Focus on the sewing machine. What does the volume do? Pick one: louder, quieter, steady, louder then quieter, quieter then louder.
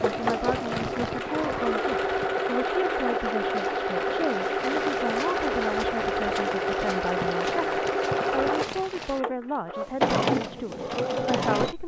steady.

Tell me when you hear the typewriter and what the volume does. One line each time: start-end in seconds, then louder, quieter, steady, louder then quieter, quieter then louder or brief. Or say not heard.
not heard.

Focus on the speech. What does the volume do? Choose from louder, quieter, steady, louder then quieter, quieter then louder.
steady.